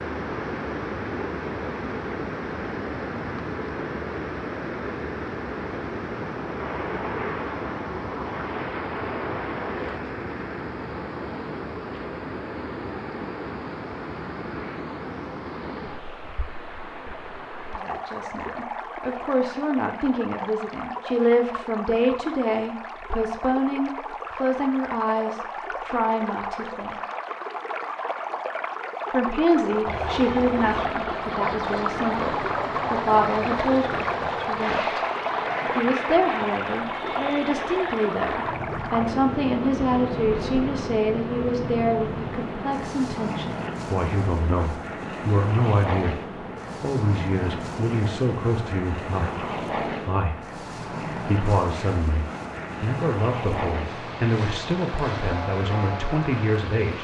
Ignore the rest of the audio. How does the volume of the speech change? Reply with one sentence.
The volume of the speech stays about the same.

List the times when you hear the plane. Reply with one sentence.
You can hear the plane from 6.5 to 10.0 s and from 29.9 to 57.0 s.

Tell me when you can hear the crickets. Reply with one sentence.
The crickets can't be heard in this clip.